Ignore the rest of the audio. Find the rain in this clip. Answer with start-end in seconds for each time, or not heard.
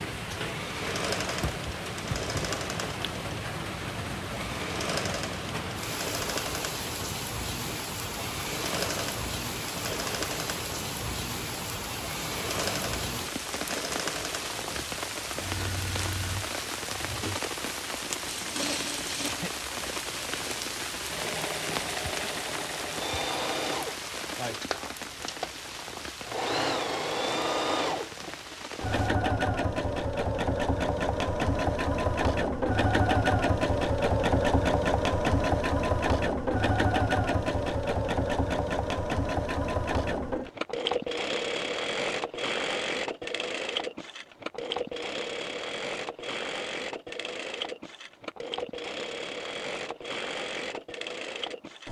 0.0-29.1.